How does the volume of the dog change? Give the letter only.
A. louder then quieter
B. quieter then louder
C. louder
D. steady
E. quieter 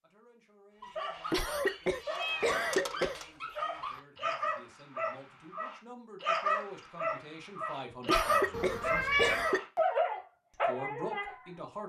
C.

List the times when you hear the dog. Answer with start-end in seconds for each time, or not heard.
0.8-11.4.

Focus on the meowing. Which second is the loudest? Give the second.
9 s.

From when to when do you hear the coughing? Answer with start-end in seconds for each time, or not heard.
1.3-3.2, 8.1-9.8.